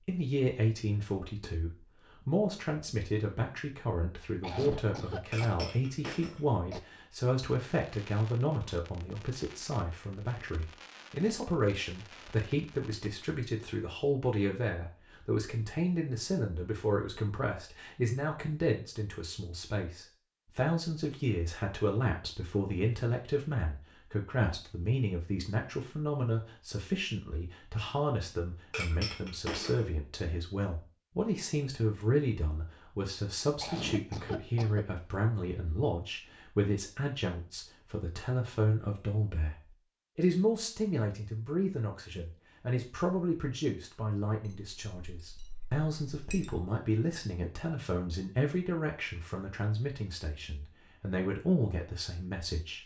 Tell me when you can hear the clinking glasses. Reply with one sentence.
The clinking glasses can be heard from 5.3 to 6.5 s, from 28.7 to 29.9 s and from 44.5 to 46.6 s.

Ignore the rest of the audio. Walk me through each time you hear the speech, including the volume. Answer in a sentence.
The speech can be heard from 0.1 to 52.8 s, at a steady volume.